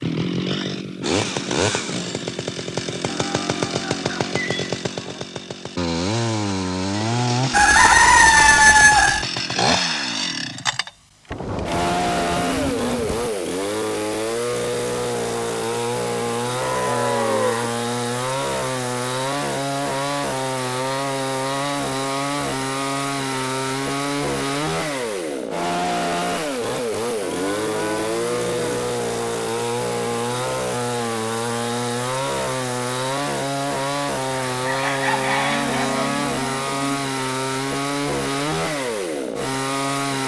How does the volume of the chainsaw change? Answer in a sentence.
The loudness of the chainsaw stays about the same.